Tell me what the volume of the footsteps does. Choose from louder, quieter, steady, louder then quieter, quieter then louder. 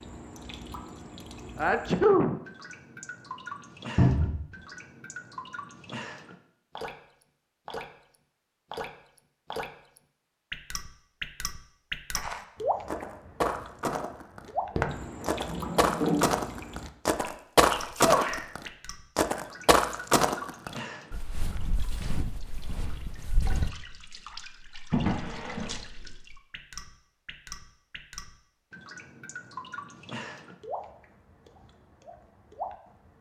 louder then quieter.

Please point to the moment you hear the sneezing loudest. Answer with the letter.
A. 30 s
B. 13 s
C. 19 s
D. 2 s
D.